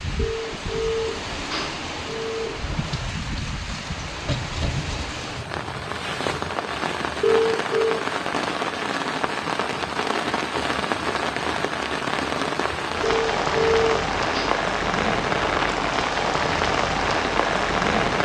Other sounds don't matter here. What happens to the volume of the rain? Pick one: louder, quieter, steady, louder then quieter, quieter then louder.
louder.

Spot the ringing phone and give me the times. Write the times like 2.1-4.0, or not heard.
0.1-2.5, 7.2-8.0, 13.0-14.5.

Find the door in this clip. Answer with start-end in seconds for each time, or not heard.
not heard.